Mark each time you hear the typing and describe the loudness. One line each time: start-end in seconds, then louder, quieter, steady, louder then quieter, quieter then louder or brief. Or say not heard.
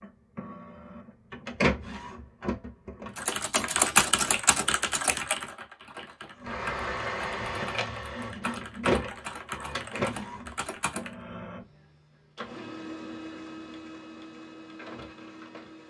3.1-11.1 quieter.